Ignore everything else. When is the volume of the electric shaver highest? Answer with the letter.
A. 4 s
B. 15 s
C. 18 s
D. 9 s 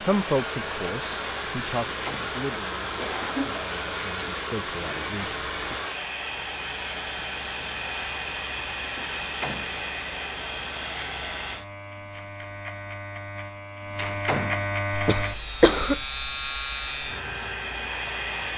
B.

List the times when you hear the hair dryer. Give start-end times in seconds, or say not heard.
0.0-11.7, 14.8-18.5.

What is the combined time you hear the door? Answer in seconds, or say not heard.
2 s.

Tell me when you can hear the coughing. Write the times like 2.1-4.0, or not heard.
3.0-3.6, 14.9-16.1.